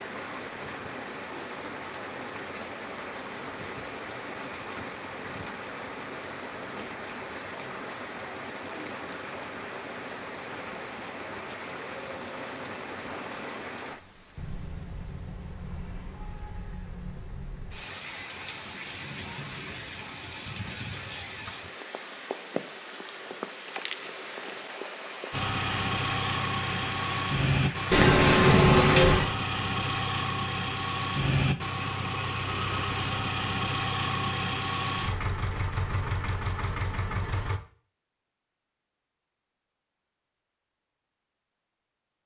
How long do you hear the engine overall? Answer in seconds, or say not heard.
12 s.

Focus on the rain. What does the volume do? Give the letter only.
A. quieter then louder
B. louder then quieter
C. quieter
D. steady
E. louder
D.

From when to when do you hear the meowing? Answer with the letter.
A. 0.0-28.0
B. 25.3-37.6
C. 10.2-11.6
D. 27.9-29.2
D.